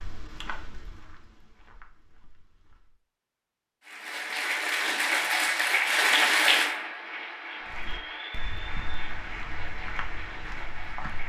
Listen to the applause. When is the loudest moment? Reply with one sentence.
The volume of the applause peaks at 6 seconds.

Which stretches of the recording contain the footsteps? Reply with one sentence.
You can hear the footsteps from 0.0 to 3.0 s and from 7.7 to 11.2 s.